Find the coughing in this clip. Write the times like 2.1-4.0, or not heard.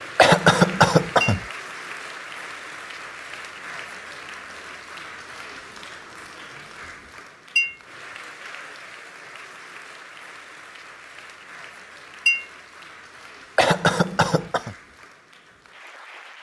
0.1-1.4, 13.6-14.8.